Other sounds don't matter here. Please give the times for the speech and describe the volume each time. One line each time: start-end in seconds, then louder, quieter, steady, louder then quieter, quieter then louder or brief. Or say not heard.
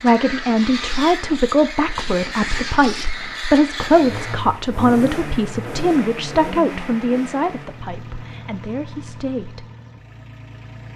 0.0-9.7 quieter.